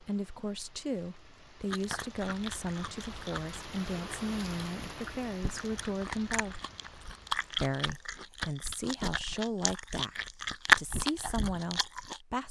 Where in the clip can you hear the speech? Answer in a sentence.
You can hear the speech from 0.0 to 6.6 s and from 7.6 to 12.4 s.